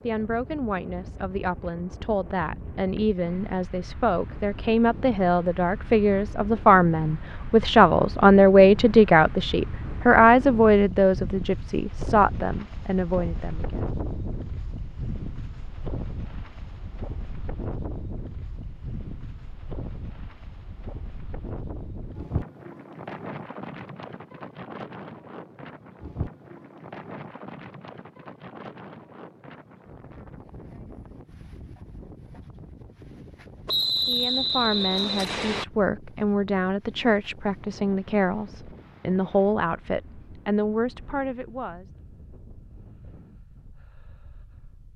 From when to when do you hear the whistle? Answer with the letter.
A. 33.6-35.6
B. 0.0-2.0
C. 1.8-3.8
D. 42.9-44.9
A.